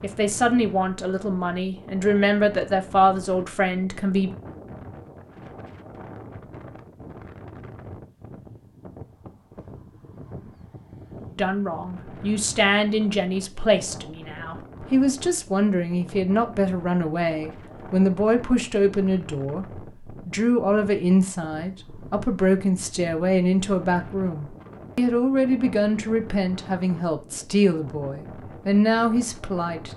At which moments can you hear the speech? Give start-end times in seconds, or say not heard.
0.0-4.3, 11.3-29.9.